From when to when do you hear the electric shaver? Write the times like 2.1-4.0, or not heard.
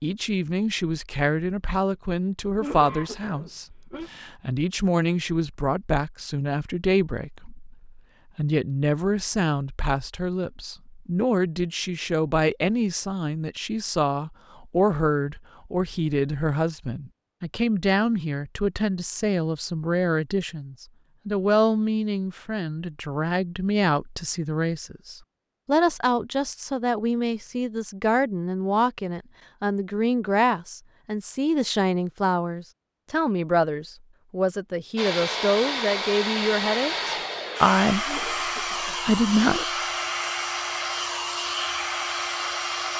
not heard.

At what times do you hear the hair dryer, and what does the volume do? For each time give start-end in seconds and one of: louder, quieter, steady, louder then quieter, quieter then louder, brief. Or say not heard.
35.0-42.9 steady.